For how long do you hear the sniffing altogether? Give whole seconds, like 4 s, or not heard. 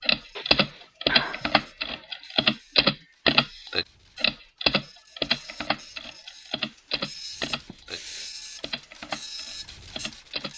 2 s.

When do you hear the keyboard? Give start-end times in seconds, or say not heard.
0.0-10.5.